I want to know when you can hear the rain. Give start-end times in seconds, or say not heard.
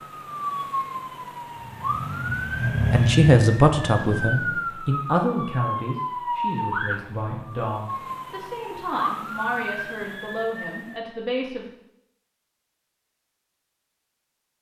not heard.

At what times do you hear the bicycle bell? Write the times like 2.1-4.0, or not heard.
not heard.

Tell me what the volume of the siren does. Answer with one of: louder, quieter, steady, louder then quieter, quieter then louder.
steady.